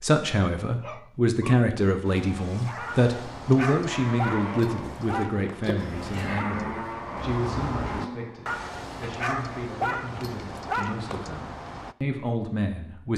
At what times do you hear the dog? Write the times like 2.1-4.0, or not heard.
0.7-11.9.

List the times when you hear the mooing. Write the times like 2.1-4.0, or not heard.
3.9-9.1.